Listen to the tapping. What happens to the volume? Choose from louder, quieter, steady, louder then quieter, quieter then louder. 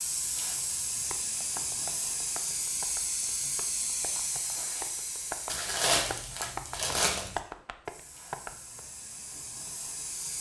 quieter then louder.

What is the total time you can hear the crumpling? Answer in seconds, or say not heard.
2 s.